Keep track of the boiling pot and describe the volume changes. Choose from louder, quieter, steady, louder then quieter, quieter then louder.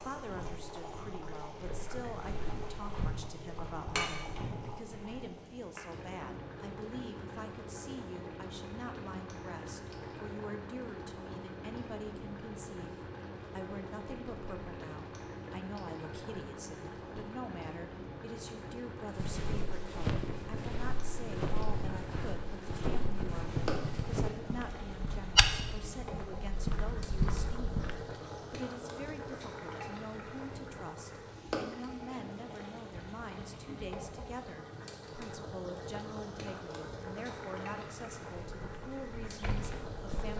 steady.